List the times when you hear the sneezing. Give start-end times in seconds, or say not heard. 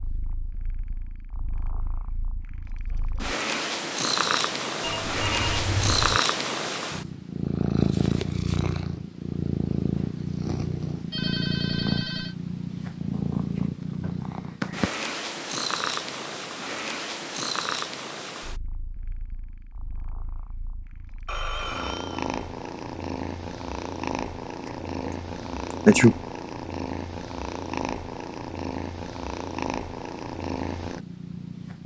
25.7-26.2.